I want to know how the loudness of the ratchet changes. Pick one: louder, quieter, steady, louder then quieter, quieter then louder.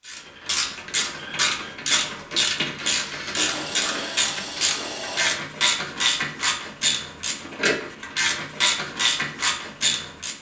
steady.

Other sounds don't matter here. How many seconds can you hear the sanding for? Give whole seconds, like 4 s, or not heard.
2 s.